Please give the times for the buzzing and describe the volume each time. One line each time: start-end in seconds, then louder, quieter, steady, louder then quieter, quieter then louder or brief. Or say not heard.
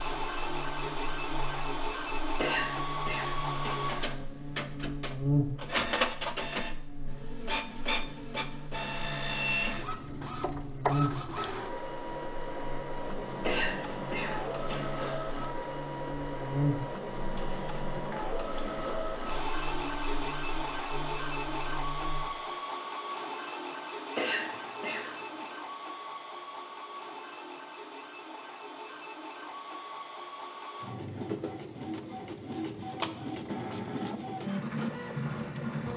0.0-22.2 louder then quieter.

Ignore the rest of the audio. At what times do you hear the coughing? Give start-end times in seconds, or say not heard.
2.4-4.0, 13.4-15.1, 24.1-25.4.